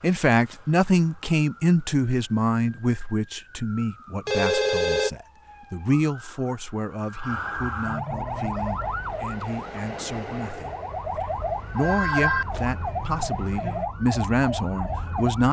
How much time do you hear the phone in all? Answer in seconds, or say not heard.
2 s.